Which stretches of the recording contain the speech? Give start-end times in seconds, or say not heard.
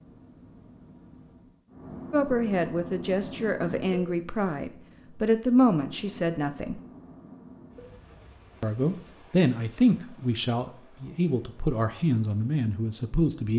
2.1-6.8, 8.6-13.5.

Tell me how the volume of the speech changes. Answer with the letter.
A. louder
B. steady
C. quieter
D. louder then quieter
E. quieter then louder
B.